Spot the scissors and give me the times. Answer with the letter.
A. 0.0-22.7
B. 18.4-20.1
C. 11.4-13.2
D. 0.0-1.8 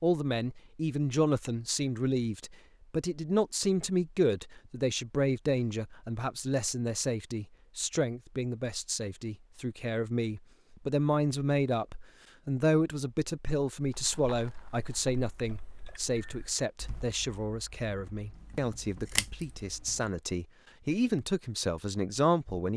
B.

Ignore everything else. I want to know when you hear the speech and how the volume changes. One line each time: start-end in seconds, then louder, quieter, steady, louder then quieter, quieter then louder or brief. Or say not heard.
0.0-22.7 steady.